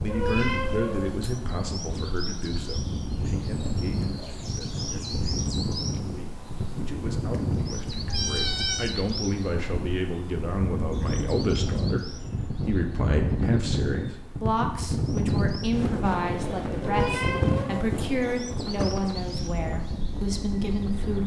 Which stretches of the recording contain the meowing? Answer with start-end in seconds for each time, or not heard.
0.1-1.4, 7.2-8.9, 16.8-17.9.